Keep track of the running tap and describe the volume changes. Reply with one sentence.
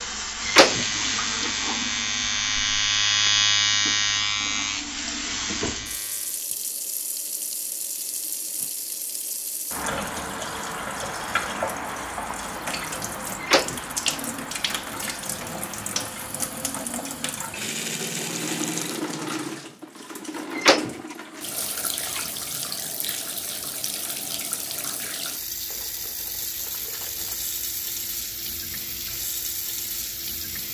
The volume of the running tap stays about the same.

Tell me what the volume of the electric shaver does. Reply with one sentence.
The volume of the electric shaver goes up, then down.